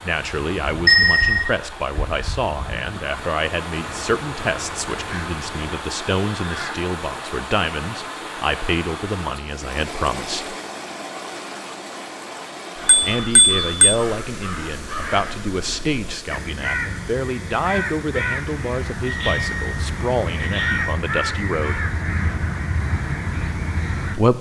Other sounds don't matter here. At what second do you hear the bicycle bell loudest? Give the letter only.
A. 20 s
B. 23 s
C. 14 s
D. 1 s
D.